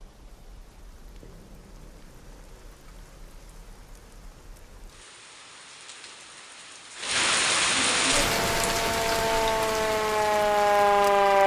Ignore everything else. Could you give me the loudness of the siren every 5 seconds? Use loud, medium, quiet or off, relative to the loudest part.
off, medium, loud.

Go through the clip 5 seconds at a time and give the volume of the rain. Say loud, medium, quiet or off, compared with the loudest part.
quiet, loud, medium.